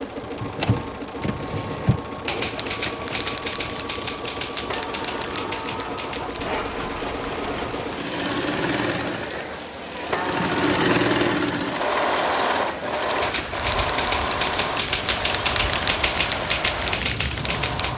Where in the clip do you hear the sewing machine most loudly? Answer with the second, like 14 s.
11 s.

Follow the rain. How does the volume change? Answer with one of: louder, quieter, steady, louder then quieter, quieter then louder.
steady.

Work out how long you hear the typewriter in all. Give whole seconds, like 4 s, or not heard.
11 s.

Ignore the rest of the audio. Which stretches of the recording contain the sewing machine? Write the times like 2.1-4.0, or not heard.
0.0-17.9.